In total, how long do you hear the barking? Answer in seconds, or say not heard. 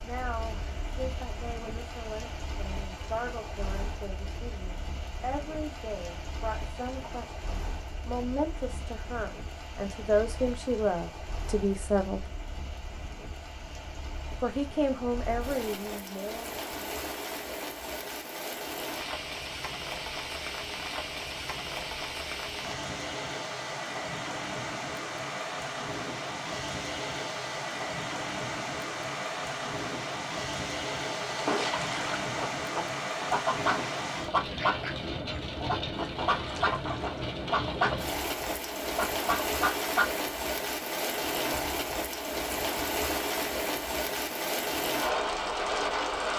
not heard.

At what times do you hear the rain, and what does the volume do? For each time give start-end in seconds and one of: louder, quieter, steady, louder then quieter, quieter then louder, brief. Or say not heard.
0.0-46.3 louder.